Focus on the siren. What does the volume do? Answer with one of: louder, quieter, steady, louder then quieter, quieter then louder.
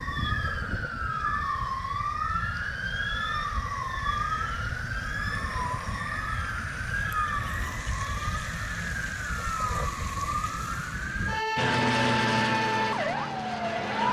steady.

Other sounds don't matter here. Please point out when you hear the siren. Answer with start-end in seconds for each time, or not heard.
0.0-14.0.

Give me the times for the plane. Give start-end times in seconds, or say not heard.
11.6-14.0.